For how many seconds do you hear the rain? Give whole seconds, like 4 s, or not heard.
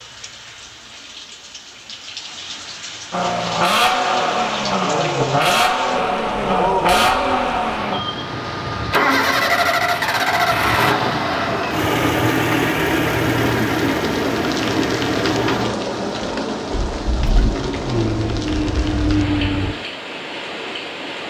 21 s.